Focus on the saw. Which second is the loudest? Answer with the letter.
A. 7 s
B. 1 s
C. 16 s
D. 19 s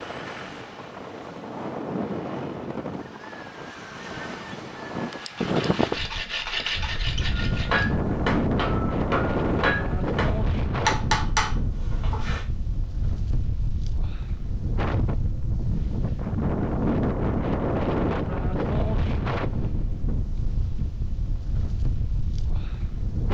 A.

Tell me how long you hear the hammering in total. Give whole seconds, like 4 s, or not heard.
5 s.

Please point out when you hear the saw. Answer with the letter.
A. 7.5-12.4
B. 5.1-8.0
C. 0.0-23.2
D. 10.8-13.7
B.